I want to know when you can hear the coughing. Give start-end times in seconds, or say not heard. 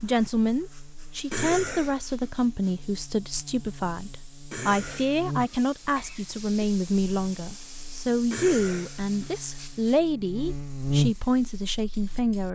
1.3-2.3, 4.5-6.7, 8.3-9.4.